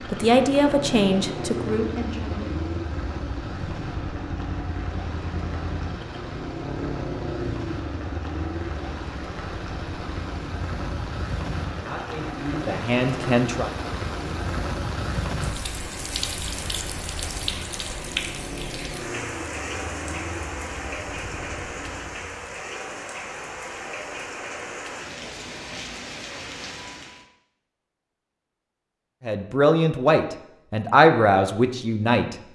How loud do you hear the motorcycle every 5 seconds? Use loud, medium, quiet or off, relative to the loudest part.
loud, loud, medium, medium, medium, off, off.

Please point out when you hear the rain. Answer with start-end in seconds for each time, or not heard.
0.0-27.2.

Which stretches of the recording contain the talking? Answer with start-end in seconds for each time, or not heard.
0.1-2.5, 11.8-13.7, 29.2-32.4.